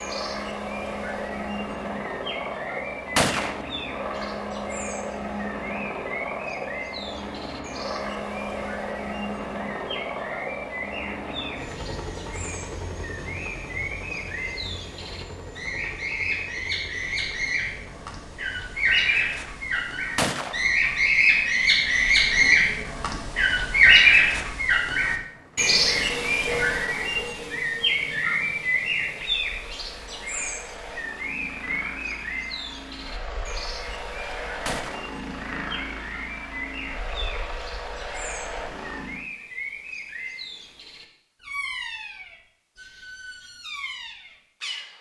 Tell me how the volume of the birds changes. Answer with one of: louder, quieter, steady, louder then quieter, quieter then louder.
louder then quieter.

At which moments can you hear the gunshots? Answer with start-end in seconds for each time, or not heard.
3.1-3.6, 20.1-20.6, 34.6-35.1.